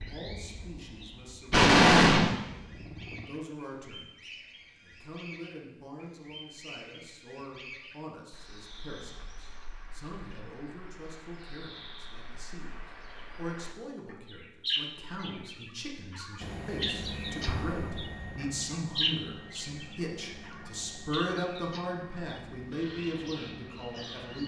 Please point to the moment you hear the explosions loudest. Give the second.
2 s.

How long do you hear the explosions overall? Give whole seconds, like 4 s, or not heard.
2 s.